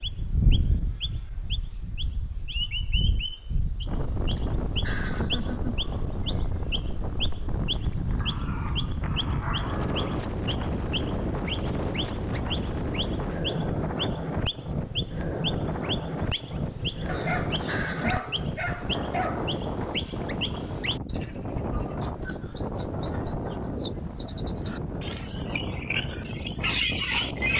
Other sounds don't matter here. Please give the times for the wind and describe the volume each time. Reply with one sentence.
The wind can be heard from 0.0 to 27.5 s, at a steady volume.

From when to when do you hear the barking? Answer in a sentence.
The barking can be heard from 8.2 to 10.2 s and from 17.1 to 19.6 s.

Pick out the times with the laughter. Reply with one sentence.
You can hear the laughter from 4.3 to 5.7 s and from 17.2 to 18.2 s.